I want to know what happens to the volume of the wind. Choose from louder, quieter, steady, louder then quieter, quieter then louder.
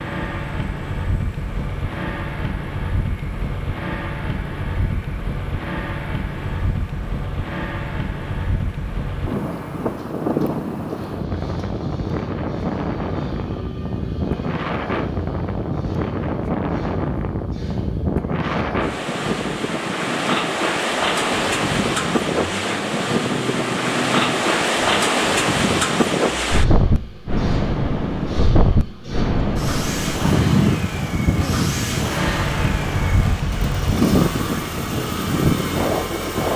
louder.